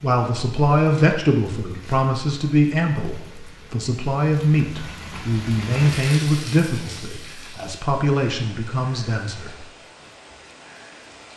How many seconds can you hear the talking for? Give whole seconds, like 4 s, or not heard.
10 s.